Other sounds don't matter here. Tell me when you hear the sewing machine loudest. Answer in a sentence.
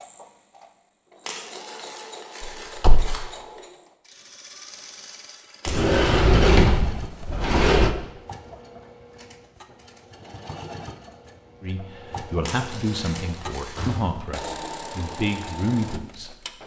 The volume of the sewing machine peaks at 15 seconds.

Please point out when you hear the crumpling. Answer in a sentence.
The crumpling can be heard from 1.2 to 3.2 s, from 5.6 to 6.0 s and from 12.4 to 14.0 s.